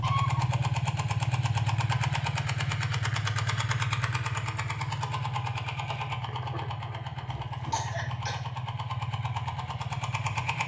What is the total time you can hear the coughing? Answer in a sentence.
The coughing can be heard for 2 seconds in total.